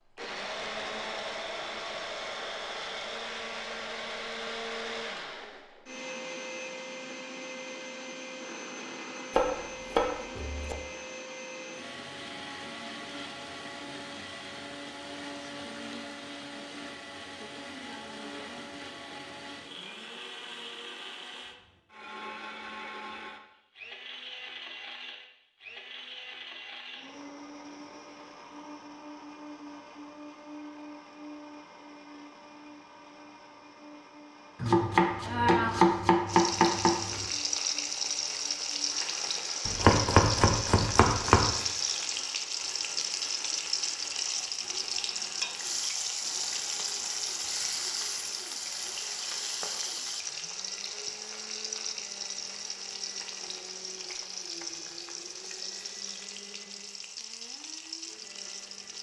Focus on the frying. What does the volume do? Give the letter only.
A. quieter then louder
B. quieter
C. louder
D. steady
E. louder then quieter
B.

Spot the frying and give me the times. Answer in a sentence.
The frying can be heard from 36.2 to 58.9 s.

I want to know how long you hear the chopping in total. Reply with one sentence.
The chopping can be heard for 6 seconds in total.